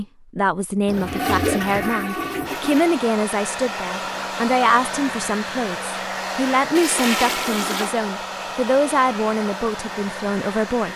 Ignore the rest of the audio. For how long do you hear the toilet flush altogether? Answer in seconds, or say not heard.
3 s.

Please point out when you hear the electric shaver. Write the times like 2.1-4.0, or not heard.
not heard.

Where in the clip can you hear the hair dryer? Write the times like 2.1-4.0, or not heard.
2.5-10.9.